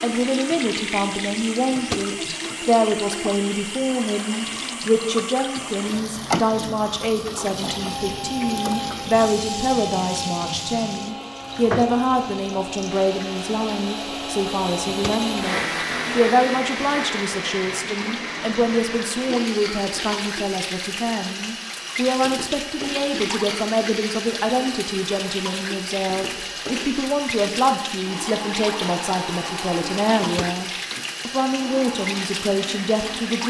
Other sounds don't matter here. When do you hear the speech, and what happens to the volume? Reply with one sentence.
You can hear the speech from 0.0 to 33.4 s, at a steady volume.